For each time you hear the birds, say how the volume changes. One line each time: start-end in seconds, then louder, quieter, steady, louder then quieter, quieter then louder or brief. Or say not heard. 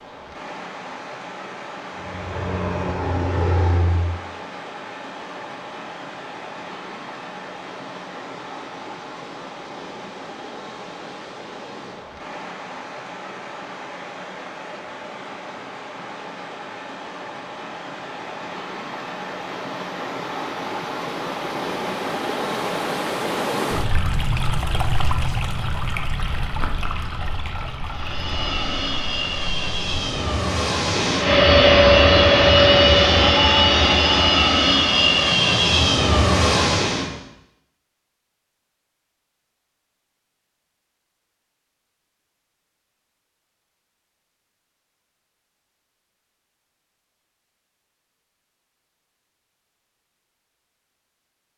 not heard.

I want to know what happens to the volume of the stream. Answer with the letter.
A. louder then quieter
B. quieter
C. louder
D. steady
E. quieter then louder
C.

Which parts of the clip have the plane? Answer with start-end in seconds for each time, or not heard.
1.9-4.2, 27.9-37.1.